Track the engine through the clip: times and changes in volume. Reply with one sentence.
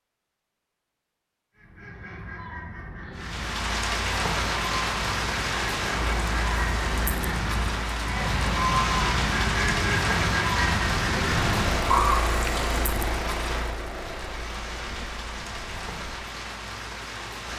You can hear the engine from 11.4 to 16.0 s, getting quieter.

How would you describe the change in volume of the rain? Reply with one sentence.
The loudness of the rain goes down.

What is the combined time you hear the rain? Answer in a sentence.
The rain can be heard for 14 seconds in total.